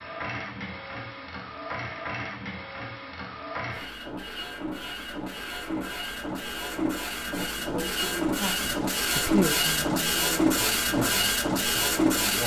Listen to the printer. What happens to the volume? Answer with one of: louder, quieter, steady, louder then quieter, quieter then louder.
louder.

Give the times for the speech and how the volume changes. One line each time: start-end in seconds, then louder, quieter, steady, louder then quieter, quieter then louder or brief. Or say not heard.
7.2-12.4 louder then quieter.